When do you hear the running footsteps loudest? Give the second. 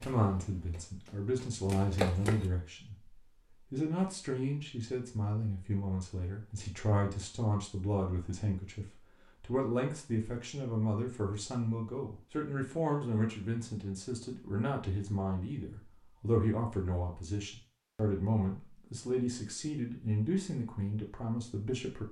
2 s.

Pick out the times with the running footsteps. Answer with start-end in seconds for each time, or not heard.
0.0-2.5.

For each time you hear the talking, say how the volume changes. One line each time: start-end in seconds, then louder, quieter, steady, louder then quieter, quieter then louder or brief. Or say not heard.
0.0-22.0 steady.